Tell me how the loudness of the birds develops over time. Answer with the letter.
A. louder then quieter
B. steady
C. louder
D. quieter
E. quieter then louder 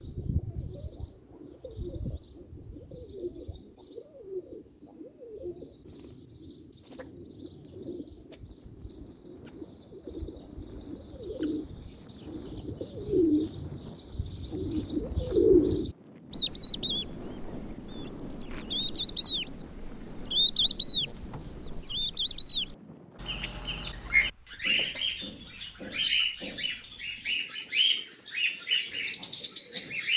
C.